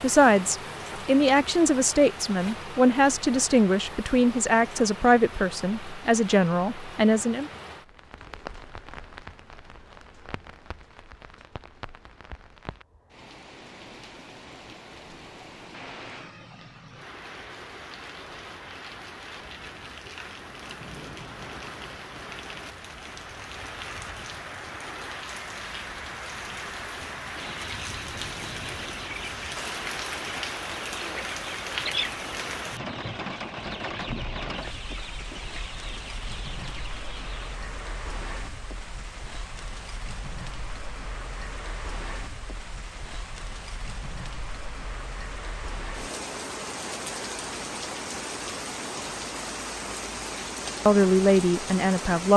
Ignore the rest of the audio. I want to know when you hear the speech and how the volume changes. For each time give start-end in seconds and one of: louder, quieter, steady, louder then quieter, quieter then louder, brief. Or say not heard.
0.0-7.5 steady
50.9-52.3 brief.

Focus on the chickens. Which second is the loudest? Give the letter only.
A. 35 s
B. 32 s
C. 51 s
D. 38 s
B.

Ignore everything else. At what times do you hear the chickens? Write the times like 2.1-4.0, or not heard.
27.4-37.5.